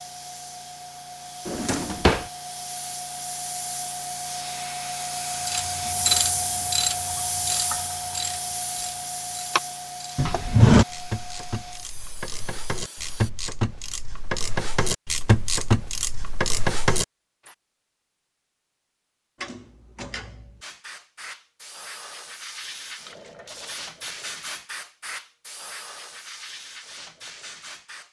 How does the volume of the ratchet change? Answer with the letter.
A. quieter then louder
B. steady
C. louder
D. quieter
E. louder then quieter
A.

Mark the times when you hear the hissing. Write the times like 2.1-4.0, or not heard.
0.0-13.3, 20.6-28.0.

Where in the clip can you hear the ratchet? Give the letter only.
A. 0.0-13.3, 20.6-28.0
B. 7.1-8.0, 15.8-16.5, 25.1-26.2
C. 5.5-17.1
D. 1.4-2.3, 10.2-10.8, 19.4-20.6
C.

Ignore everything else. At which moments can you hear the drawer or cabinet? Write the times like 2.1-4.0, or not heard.
1.4-2.3, 10.2-10.8, 19.4-20.6.